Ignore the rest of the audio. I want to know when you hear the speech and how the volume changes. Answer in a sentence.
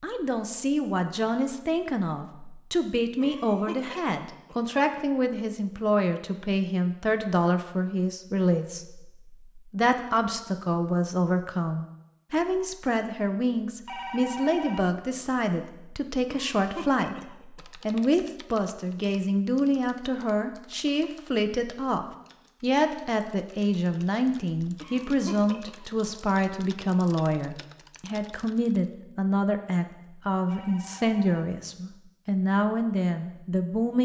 The speech can be heard from 0.0 to 33.9 s, at a steady volume.